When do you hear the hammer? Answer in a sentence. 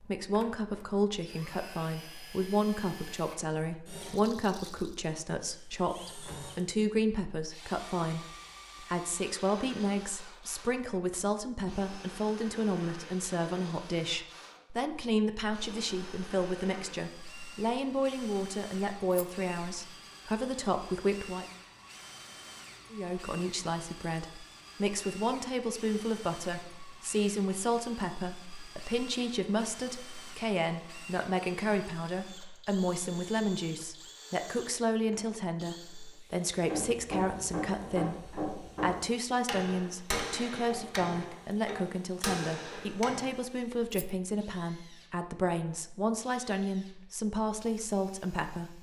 You can hear the hammer from 36.5 to 43.4 s.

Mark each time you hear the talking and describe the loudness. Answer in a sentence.
The talking can be heard from 0.0 to 21.4 s, at a steady volume; and from 22.9 to 48.7 s, at a steady volume.